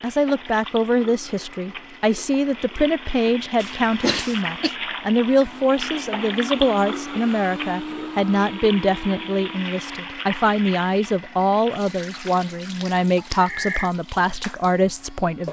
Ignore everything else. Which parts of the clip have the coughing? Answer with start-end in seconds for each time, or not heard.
3.5-4.7, 13.3-13.9.